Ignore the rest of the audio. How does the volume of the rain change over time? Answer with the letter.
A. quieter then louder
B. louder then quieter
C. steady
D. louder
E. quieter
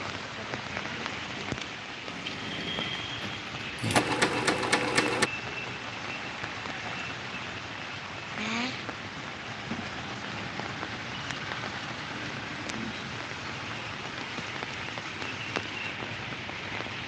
C.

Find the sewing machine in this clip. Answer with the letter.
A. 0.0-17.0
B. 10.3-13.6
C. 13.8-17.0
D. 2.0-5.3
D.